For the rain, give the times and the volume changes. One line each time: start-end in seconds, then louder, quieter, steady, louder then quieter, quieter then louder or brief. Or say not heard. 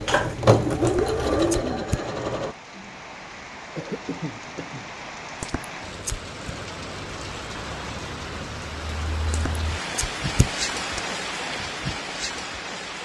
0.0-13.0 louder.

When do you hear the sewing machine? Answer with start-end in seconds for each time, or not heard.
0.0-2.5.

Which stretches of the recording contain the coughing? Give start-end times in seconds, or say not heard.
3.8-4.9.